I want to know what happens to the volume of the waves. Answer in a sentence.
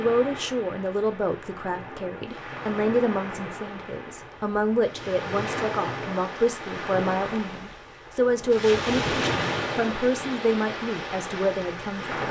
The loudness of the waves goes up.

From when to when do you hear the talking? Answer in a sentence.
The talking can be heard from 0.0 to 12.2 s.